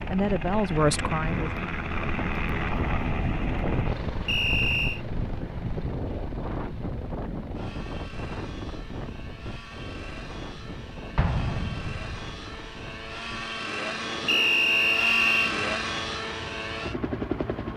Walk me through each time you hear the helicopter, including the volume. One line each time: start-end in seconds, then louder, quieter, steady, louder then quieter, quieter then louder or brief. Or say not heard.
0.0-17.7 quieter then louder.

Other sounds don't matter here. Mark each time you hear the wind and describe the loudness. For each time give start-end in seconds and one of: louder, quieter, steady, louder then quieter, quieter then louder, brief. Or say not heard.
0.0-17.7 quieter.